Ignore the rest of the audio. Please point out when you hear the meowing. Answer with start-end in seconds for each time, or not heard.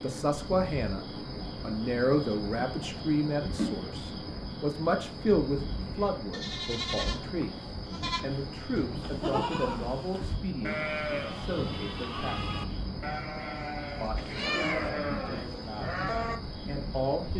14.2-14.9.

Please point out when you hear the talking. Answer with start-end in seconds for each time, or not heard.
0.0-7.5, 8.2-12.6, 14.0-17.3.